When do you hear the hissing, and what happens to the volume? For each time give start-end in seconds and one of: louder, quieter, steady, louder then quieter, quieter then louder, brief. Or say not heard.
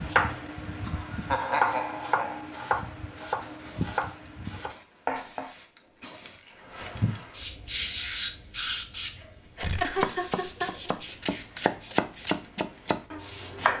0.0-13.7 louder then quieter.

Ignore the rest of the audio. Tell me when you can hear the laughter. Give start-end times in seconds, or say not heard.
0.8-2.5, 9.6-11.2.